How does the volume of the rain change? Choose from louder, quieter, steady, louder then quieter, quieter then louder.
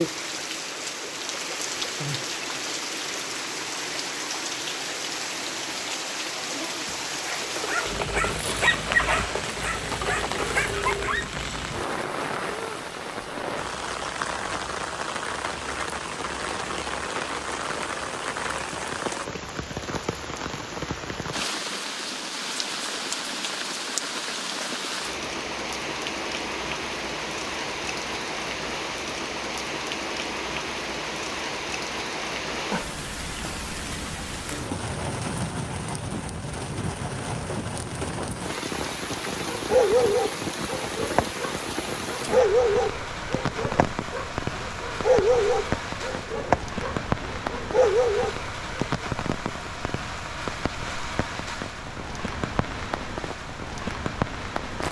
steady.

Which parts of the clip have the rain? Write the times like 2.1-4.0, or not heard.
0.0-54.8.